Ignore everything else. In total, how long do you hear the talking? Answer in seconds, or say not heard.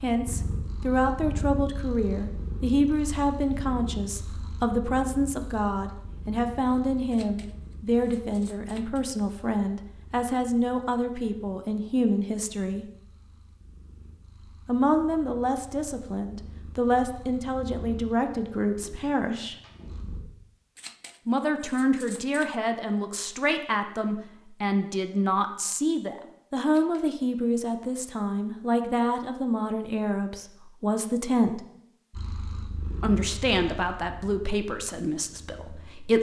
31 s.